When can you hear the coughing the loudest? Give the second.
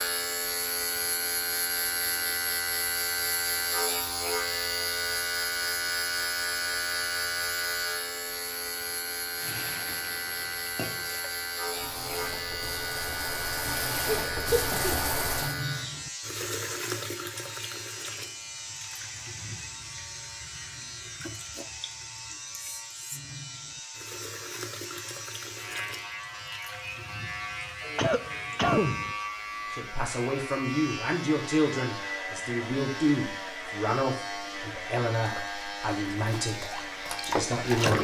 29 s.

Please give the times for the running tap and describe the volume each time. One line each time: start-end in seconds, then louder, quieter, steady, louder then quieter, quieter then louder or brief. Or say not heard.
9.4-28.8 louder then quieter
35.2-37.9 brief.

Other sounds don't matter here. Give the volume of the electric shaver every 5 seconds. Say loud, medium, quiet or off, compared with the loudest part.
loud, loud, loud, medium, medium, medium, medium, medium.